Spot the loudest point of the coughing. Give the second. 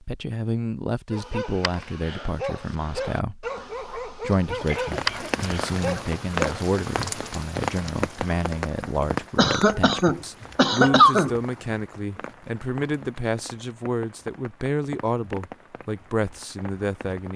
11 s.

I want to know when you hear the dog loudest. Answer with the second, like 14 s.
5 s.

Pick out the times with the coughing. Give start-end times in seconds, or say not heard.
4.6-5.3, 9.3-11.3.